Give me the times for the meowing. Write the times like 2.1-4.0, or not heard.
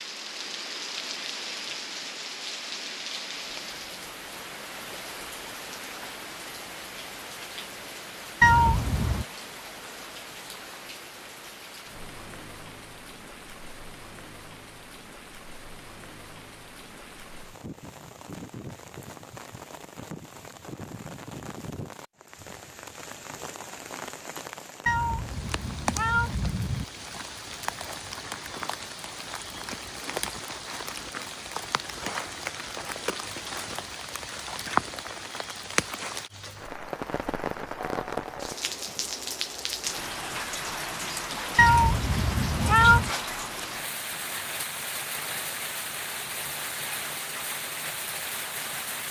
8.4-9.2, 24.9-26.9, 41.5-43.1.